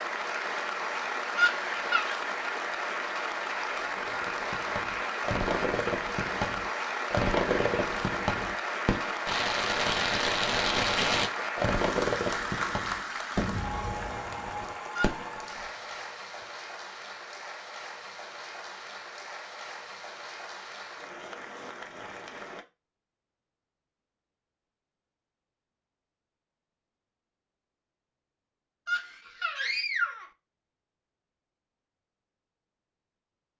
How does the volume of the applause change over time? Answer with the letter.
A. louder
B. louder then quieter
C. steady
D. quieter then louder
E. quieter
E.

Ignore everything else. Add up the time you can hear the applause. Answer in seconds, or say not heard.
23 s.